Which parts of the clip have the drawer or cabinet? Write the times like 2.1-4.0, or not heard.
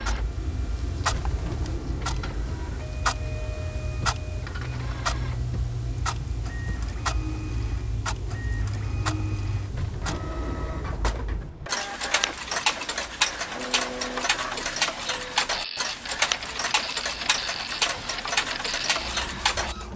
1.1-2.6, 9.7-11.7, 17.4-18.2.